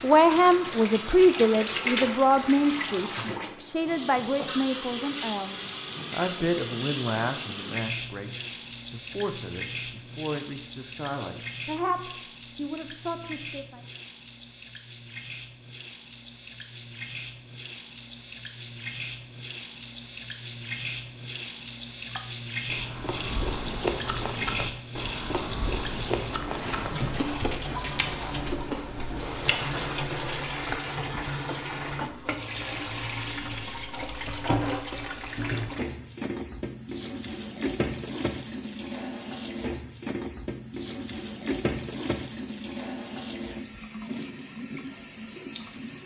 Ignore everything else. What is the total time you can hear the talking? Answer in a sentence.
The talking can be heard for 14 seconds in total.